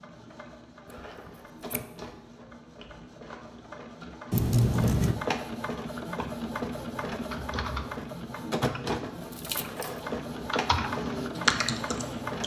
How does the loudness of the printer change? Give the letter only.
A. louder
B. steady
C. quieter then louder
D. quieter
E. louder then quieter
A.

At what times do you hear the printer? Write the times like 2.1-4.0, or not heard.
0.0-12.4.